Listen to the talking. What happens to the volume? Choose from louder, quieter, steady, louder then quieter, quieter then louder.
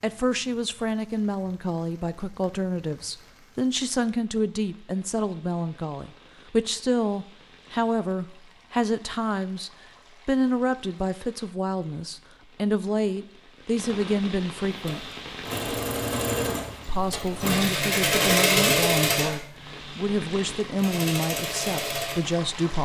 steady.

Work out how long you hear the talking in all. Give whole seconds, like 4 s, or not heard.
21 s.